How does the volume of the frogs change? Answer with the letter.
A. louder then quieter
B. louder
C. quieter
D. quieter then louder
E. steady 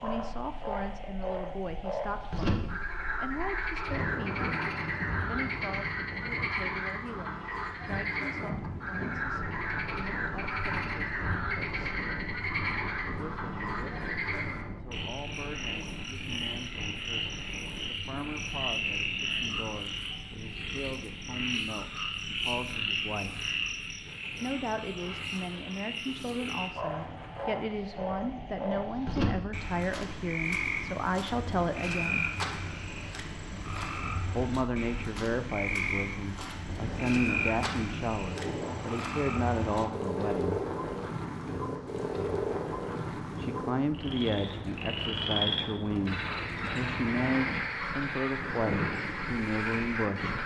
E.